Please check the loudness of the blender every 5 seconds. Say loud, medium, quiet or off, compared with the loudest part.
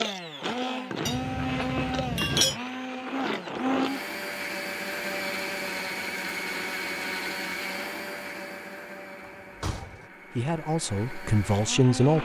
loud, loud, medium.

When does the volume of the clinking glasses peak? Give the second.
2 s.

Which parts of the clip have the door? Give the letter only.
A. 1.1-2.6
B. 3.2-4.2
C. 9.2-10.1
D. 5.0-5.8
C.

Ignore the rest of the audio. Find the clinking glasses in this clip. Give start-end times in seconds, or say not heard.
1.1-2.6.